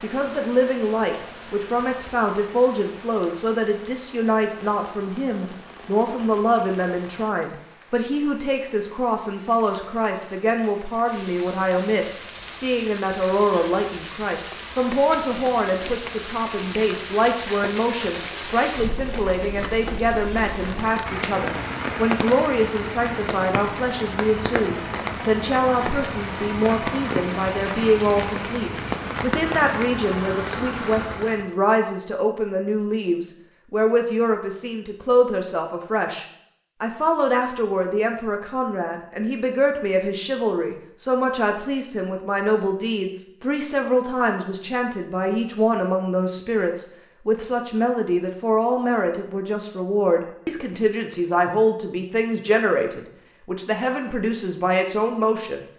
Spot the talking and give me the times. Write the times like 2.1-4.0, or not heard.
0.0-55.6.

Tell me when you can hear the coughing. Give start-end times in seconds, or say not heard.
not heard.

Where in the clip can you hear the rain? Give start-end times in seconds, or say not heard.
0.0-31.5.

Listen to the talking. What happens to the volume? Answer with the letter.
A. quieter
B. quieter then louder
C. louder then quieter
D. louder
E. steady
E.